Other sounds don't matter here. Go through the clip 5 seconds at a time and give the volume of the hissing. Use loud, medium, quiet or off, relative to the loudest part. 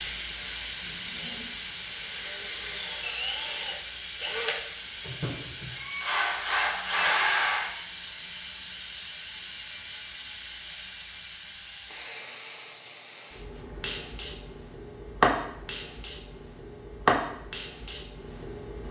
loud, medium, medium, loud.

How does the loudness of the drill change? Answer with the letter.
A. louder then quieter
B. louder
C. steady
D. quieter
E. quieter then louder
B.